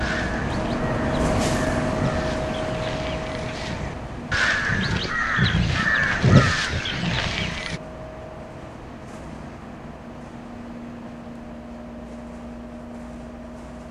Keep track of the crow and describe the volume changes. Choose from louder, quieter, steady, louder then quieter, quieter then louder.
louder.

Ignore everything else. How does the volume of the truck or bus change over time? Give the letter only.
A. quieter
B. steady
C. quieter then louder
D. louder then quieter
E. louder
A.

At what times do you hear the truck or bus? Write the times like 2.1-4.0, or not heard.
0.0-13.8.